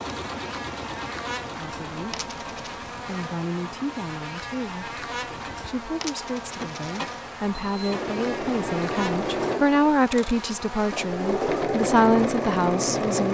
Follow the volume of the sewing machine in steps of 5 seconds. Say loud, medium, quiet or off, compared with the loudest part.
quiet, medium, loud.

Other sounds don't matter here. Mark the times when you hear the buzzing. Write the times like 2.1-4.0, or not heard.
0.0-13.2.